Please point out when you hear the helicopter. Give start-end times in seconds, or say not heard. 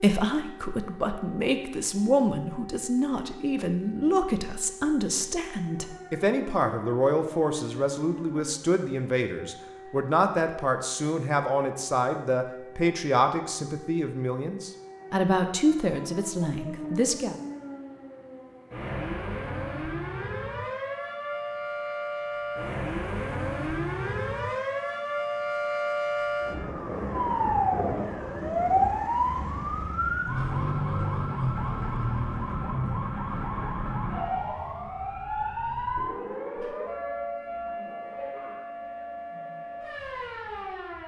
not heard.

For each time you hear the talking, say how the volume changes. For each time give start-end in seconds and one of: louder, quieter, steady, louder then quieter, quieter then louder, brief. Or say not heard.
0.0-17.4 steady.